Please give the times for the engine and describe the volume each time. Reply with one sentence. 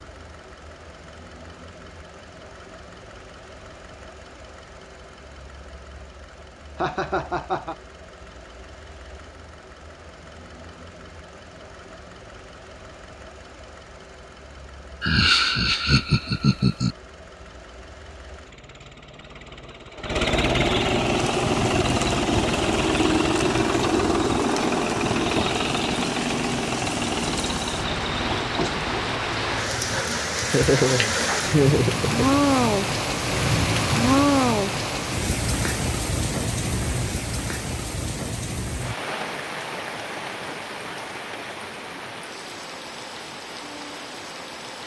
The engine can be heard from 0.0 to 30.1 s, getting louder.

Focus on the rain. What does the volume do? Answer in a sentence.
The loudness of the rain goes up, then down.